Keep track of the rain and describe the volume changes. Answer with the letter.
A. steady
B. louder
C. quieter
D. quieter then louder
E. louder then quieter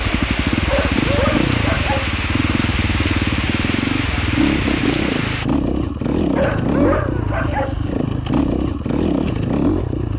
A.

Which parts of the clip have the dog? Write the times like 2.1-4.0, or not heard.
0.7-2.1, 6.3-7.8.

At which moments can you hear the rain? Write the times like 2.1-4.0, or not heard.
0.0-5.5.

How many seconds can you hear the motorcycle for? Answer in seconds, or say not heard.
10 s.